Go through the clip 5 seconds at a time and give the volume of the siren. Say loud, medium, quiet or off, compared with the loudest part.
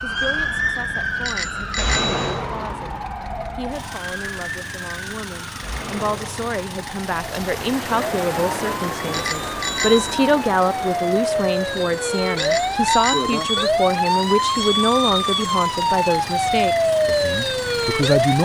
medium, quiet, loud, loud.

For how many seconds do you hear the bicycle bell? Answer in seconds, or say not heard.
3 s.